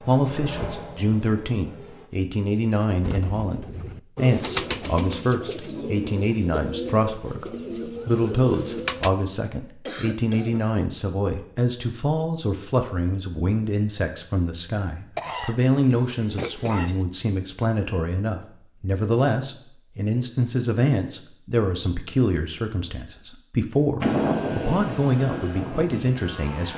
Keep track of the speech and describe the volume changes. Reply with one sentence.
The volume of the speech stays about the same.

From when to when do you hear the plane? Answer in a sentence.
The plane can be heard from 0.0 to 2.1 s and from 24.0 to 26.7 s.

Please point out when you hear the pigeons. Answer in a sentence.
You can hear the pigeons from 3.0 to 9.1 s.